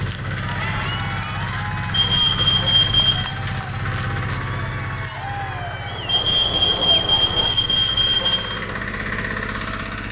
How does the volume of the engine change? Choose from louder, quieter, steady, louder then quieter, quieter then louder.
quieter then louder.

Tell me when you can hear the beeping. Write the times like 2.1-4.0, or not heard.
1.9-3.2, 6.0-8.4.